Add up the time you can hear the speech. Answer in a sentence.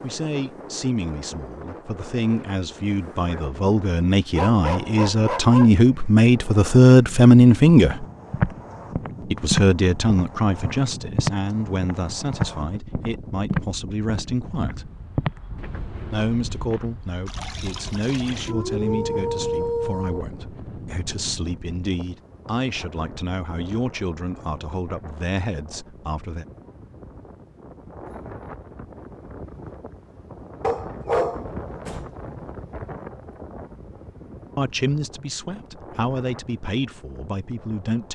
You can hear the speech for 28 seconds altogether.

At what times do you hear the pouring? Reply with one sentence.
You can hear the pouring from 17.2 to 18.6 s.